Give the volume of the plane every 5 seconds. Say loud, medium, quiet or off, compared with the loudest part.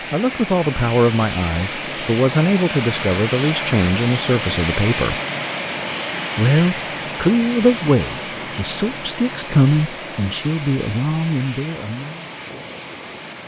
loud, loud, medium.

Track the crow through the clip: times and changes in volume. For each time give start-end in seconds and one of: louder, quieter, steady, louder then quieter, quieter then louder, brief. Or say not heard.
not heard.